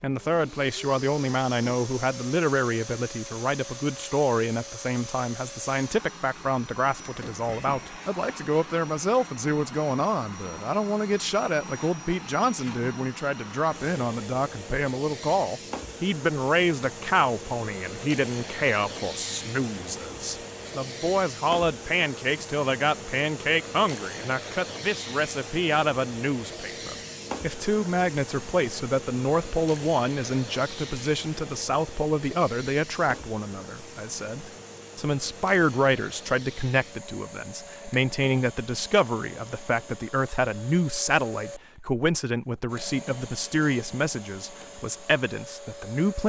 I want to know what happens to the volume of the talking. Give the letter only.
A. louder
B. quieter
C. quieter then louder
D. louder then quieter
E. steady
E.